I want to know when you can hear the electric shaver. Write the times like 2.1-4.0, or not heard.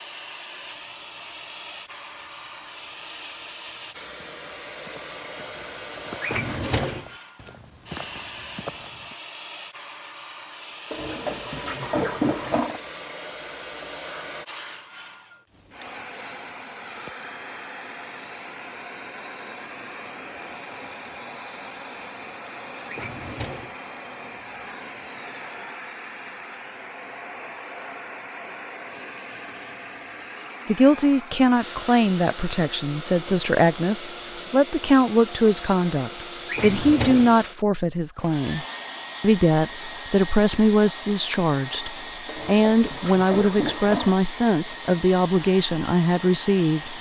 not heard.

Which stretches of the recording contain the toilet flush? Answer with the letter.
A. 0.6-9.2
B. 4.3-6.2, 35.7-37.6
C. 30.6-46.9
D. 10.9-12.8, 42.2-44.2
D.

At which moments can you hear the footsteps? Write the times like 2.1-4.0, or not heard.
0.6-9.2.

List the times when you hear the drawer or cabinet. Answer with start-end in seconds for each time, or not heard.
6.2-7.0, 22.9-23.8, 36.5-37.4.